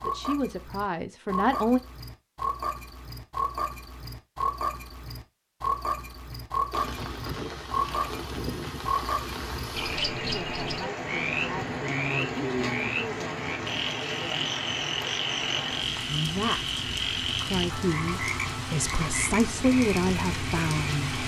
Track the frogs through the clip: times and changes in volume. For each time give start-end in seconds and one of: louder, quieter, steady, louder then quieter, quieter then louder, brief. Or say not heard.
0.0-21.1 steady.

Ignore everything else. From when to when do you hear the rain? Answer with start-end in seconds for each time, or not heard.
6.7-21.2.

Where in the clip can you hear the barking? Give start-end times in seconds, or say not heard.
not heard.